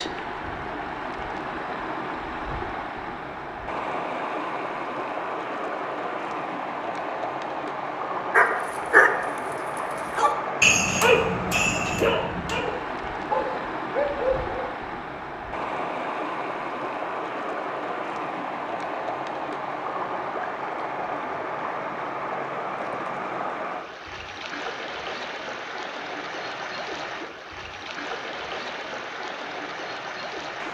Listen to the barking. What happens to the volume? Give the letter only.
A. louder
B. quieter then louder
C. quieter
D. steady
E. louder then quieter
C.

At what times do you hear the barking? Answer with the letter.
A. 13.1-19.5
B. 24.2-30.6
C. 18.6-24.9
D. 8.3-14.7
D.